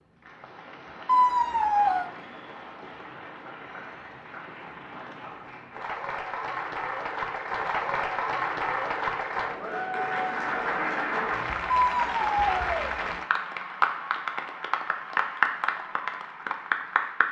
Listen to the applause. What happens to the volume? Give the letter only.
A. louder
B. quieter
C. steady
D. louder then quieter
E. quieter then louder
A.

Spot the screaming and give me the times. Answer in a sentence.
The screaming can be heard from 1.1 to 2.1 s and from 11.7 to 12.9 s.